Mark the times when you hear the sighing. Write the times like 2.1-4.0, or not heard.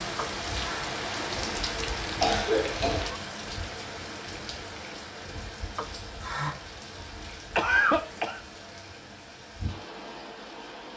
0.1-0.9, 5.8-6.5.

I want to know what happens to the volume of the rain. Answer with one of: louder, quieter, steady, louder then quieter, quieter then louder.
quieter.